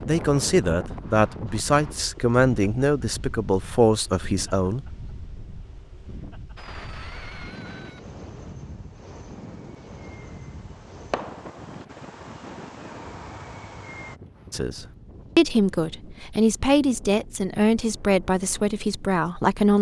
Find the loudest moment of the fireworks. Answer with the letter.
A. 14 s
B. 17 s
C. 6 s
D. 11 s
D.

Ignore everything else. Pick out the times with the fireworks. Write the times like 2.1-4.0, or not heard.
6.5-14.2.